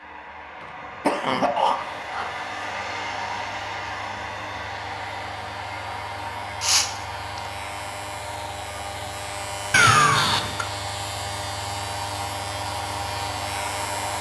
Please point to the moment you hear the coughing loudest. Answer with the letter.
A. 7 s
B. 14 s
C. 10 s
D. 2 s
C.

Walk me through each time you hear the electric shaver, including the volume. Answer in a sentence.
The electric shaver can be heard from 1.8 to 14.1 s, getting louder.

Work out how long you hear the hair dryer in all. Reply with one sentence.
You can hear the hair dryer for 14 seconds altogether.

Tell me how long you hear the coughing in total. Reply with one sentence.
The coughing can be heard for 3 seconds in total.